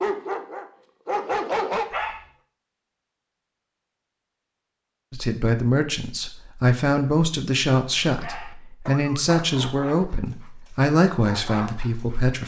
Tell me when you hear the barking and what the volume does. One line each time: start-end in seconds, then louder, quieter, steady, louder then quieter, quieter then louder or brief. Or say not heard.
0.0-2.2 brief
8.1-12.4 quieter then louder.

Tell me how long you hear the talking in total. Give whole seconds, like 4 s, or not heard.
7 s.